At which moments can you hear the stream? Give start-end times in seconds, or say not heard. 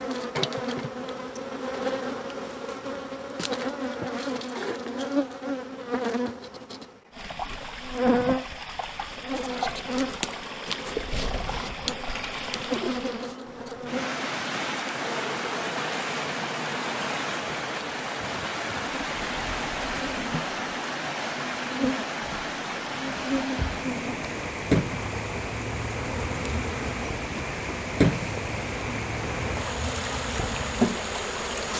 7.1-31.7.